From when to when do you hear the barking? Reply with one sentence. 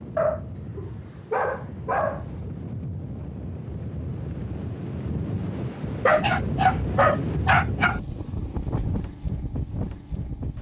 The barking can be heard from 0.1 to 2.5 s and from 6.0 to 8.0 s.